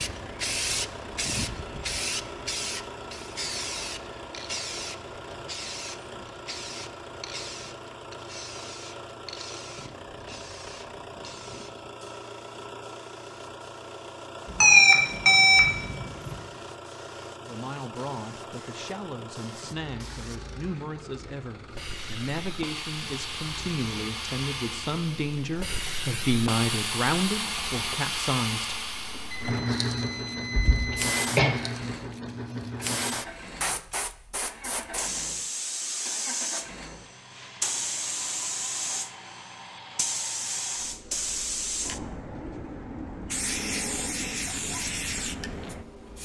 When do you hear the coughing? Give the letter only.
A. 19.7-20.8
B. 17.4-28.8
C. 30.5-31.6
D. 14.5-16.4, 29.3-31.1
C.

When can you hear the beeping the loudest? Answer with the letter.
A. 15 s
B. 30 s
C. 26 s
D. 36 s
A.